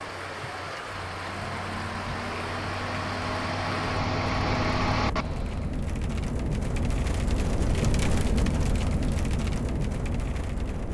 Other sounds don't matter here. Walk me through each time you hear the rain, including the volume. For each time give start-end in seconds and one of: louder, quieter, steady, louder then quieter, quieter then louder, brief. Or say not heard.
0.0-10.8 louder.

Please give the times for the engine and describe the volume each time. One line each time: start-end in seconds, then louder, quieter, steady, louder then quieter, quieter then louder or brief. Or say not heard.
0.0-5.7 louder.